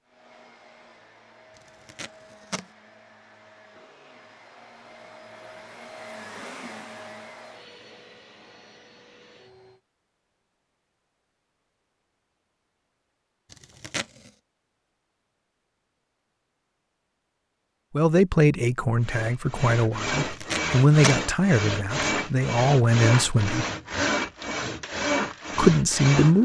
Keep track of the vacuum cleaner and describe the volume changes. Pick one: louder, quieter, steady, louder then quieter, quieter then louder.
louder then quieter.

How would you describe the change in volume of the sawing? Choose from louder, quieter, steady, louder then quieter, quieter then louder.
steady.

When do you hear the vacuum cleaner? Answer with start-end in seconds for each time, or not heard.
0.0-9.8.